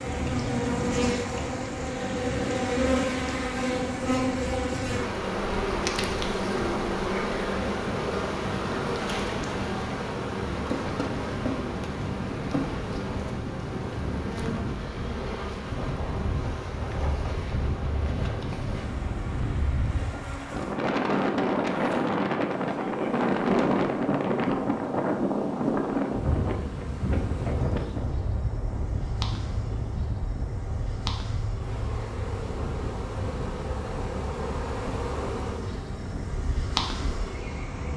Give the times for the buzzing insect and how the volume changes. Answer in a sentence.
You can hear the buzzing insect from 0.0 to 37.9 s, getting quieter then louder.